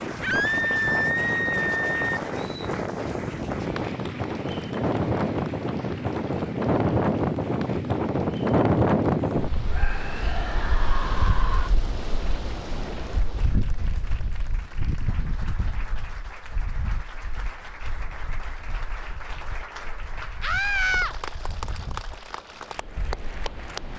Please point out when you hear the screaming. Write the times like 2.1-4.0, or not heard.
0.2-2.2, 9.7-11.7, 20.4-21.1.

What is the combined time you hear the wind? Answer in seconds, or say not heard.
24 s.